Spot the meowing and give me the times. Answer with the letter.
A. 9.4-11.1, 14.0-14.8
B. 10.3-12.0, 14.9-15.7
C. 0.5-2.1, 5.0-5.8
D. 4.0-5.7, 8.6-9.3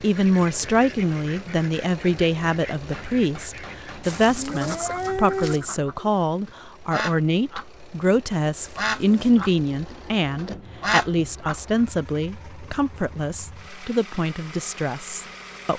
D.